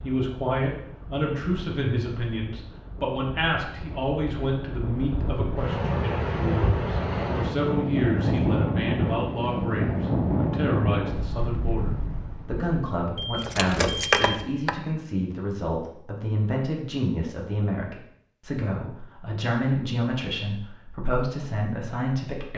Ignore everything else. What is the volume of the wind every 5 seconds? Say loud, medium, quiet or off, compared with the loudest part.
quiet, loud, loud, off, off.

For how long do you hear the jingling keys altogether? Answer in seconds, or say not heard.
2 s.